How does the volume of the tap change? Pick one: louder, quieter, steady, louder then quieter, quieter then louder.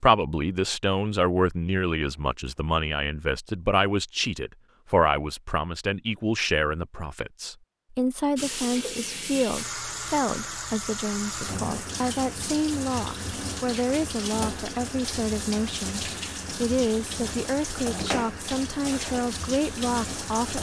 steady.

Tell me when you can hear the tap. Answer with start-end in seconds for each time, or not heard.
8.3-20.5.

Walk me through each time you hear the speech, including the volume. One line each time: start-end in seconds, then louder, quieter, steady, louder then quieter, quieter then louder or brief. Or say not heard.
0.0-20.5 steady.